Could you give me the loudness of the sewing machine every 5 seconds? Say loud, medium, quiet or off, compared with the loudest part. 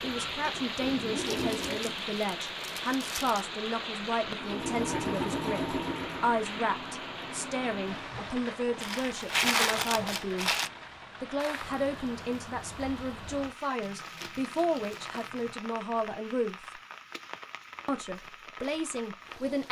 loud, loud, off, off.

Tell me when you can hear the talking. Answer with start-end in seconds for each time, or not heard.
0.0-10.6, 11.2-16.8, 17.9-19.6.